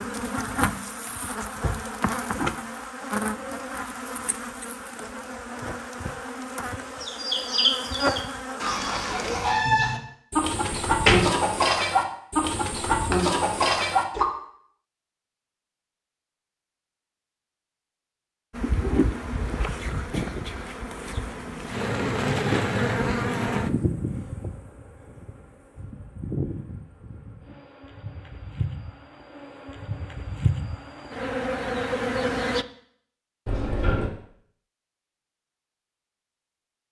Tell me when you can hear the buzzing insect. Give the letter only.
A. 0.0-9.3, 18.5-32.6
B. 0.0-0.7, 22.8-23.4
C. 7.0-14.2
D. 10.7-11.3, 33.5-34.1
A.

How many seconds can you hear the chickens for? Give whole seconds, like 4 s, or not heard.
7 s.